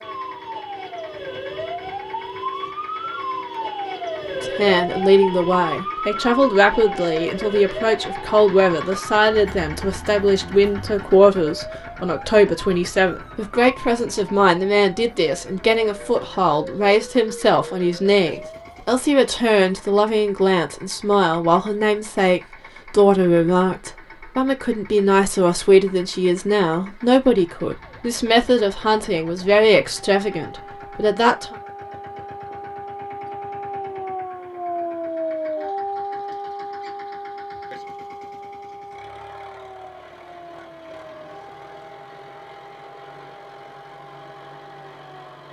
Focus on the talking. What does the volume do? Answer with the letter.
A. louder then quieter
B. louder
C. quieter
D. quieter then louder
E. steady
E.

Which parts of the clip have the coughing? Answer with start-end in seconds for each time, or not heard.
not heard.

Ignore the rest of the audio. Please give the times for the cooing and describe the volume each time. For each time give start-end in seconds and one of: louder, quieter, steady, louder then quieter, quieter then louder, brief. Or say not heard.
not heard.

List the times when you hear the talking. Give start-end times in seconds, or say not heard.
4.4-31.6.